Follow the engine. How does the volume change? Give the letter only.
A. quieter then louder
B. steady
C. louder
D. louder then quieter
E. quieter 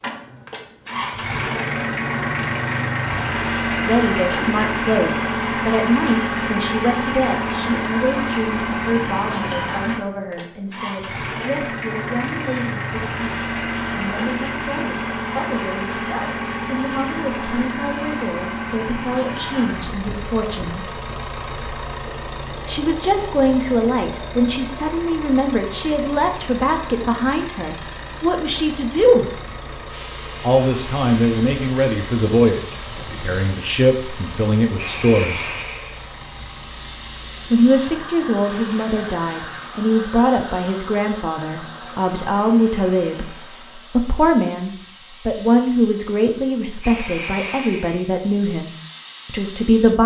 E.